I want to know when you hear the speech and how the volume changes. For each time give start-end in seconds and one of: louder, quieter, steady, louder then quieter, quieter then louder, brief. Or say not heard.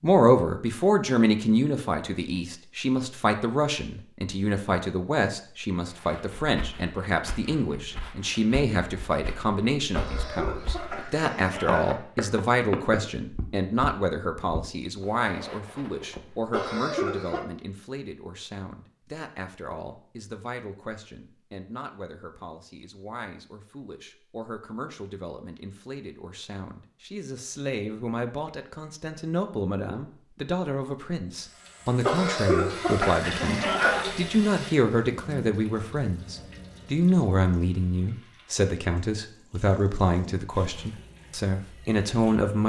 0.0-42.6 quieter then louder.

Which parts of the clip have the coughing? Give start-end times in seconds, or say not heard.
9.9-11.9, 16.5-17.4, 32.0-34.0.